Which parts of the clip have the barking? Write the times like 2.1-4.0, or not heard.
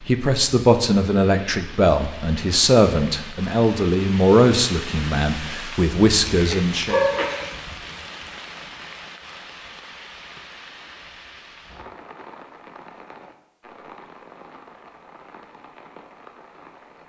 6.3-7.5.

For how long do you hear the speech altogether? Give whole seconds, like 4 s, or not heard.
7 s.